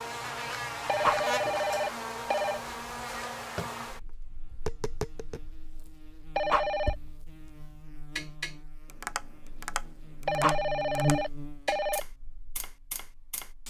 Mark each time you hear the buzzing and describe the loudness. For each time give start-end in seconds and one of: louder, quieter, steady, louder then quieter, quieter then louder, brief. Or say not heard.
0.0-13.6 quieter then louder.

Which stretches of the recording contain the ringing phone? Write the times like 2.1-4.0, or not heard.
0.8-2.6, 6.3-7.0, 10.2-12.0.